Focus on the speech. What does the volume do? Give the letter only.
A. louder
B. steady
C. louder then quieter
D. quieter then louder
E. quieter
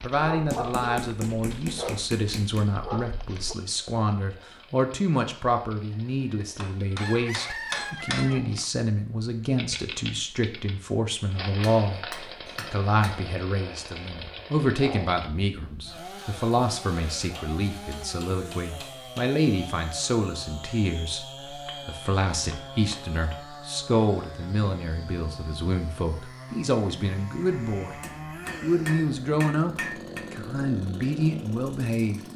B.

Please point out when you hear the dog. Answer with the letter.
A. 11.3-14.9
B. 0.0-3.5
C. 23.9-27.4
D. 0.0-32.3
B.